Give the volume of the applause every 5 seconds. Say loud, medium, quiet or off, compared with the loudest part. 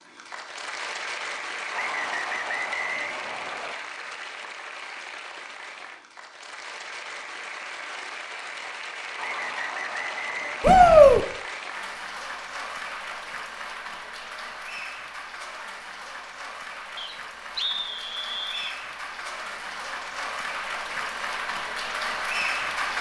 medium, medium, medium, medium, loud.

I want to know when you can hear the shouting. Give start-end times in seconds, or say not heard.
10.6-11.2.